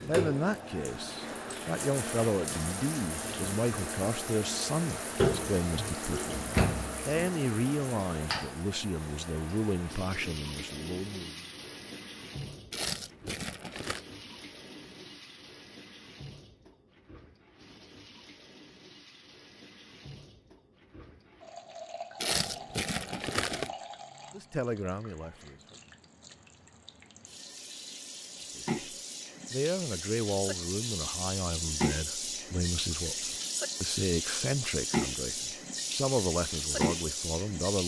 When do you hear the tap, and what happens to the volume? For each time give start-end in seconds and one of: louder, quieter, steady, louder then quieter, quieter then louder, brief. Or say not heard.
0.0-37.8 quieter then louder.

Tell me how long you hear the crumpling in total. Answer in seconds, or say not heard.
3 s.